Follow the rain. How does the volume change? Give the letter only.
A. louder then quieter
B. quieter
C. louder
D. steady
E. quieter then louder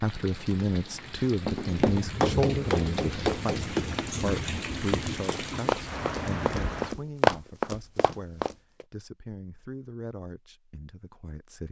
C.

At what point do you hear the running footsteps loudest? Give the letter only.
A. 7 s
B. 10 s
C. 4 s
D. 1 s
A.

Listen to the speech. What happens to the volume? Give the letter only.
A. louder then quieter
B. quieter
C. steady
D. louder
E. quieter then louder
B.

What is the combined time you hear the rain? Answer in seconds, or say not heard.
7 s.